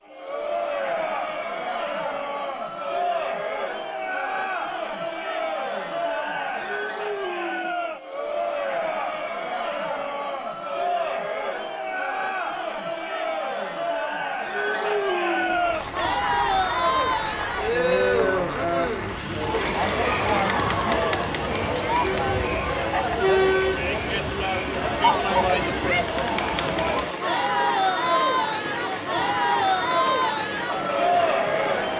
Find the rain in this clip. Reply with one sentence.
The rain can be heard from 15.3 to 31.9 s.